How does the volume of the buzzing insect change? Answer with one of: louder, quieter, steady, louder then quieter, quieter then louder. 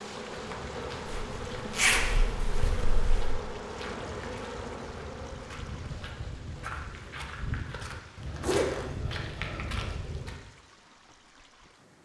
steady.